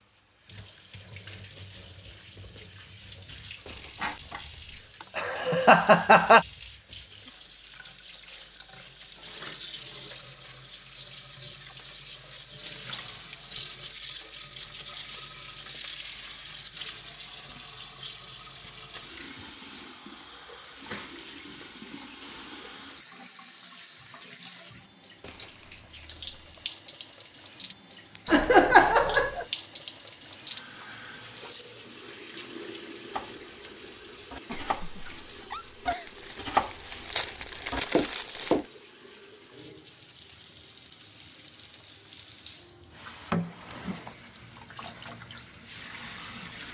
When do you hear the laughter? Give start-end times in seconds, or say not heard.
5.0-6.5, 28.2-29.4, 34.5-36.1.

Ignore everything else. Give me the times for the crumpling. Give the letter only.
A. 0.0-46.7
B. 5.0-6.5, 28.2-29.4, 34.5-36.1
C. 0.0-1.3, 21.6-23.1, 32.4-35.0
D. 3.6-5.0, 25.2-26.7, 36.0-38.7
D.